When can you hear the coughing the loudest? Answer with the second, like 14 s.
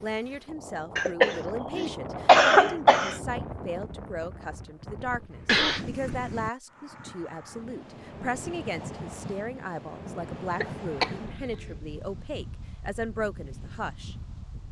2 s.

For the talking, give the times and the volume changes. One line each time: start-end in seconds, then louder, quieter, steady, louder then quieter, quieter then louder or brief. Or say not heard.
0.0-14.2 steady.